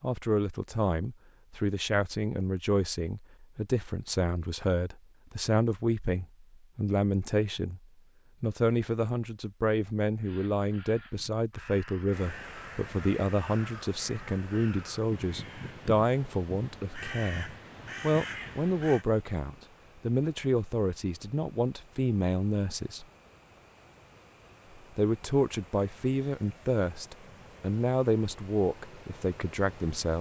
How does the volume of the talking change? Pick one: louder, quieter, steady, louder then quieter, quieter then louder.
steady.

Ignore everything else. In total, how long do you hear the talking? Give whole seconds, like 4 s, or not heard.
28 s.